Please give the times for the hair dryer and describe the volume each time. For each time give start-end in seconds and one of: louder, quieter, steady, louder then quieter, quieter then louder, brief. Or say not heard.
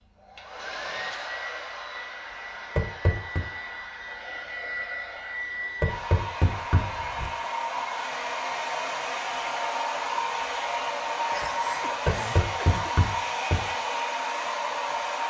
0.1-15.2 louder.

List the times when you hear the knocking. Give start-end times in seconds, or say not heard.
2.8-3.4, 5.8-6.8, 12.1-13.6.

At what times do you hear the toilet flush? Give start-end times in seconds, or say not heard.
not heard.